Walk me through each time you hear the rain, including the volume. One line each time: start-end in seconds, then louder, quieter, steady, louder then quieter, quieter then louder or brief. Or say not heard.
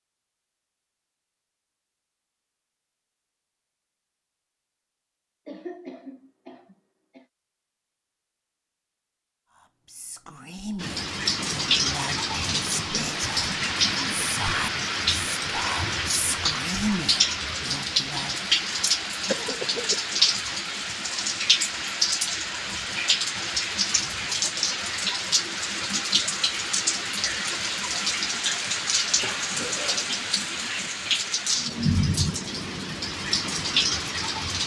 10.8-34.6 steady.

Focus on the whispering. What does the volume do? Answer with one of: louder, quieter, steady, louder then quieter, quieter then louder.
louder.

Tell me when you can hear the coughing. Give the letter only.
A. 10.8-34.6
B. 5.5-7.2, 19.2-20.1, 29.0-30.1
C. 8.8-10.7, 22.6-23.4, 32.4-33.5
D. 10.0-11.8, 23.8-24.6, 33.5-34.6
B.